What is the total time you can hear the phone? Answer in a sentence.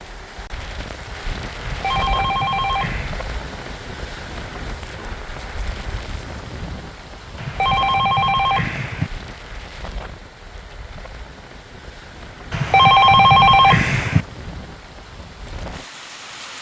The phone can be heard for 5 seconds in total.